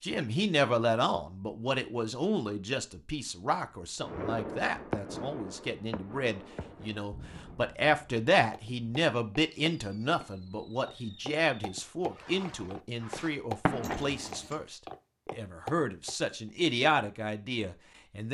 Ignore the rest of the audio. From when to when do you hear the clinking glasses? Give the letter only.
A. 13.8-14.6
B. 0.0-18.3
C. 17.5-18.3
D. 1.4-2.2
A.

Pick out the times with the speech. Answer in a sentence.
The speech can be heard from 0.0 to 18.3 s.